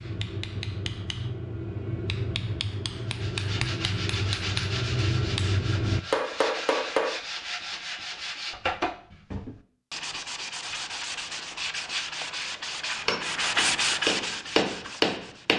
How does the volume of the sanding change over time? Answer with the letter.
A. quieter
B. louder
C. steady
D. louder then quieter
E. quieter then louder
B.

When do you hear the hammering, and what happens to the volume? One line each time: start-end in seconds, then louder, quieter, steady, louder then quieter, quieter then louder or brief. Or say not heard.
0.0-7.2 louder
13.1-15.5 brief.